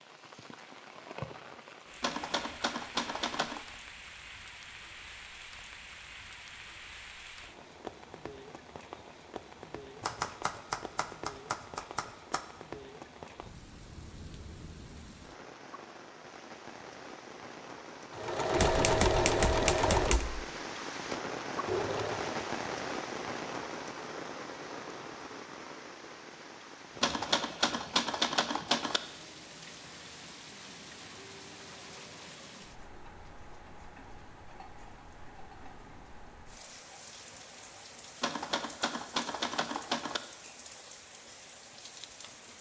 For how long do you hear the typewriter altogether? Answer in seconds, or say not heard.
10 s.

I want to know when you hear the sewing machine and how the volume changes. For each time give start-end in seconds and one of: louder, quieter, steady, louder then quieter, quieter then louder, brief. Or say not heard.
18.1-22.5 quieter then louder.